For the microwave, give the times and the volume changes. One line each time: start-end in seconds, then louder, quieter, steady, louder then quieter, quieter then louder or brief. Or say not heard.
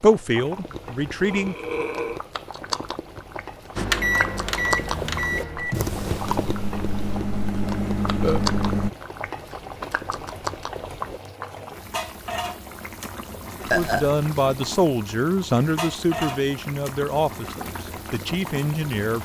3.8-8.9 quieter then louder.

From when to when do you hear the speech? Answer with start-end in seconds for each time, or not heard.
0.0-1.6, 13.7-19.2.